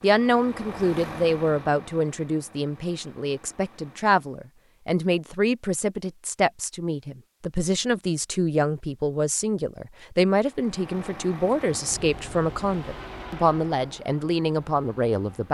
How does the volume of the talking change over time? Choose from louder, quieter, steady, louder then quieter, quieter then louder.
steady.